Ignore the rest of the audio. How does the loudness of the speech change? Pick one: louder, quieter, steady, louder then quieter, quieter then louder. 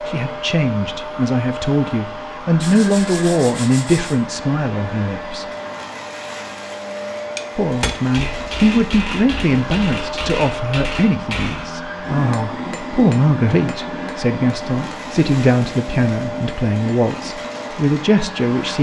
steady.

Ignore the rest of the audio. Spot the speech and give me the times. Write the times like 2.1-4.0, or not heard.
0.1-5.5, 7.5-18.7.